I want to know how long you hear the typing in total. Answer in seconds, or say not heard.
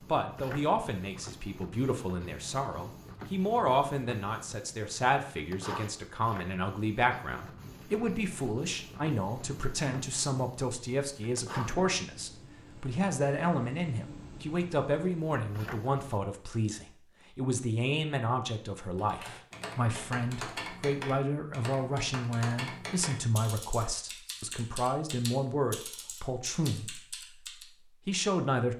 9 s.